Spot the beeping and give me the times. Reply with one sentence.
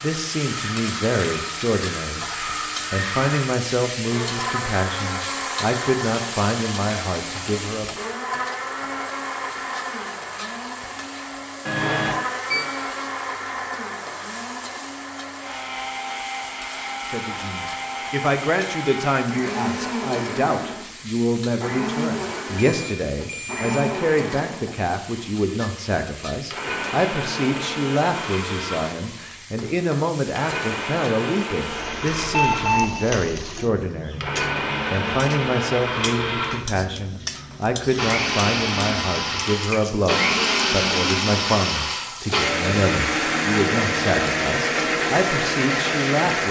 You can hear the beeping from 11.7 to 12.7 s, from 22.6 to 23.9 s and from 32.1 to 33.0 s.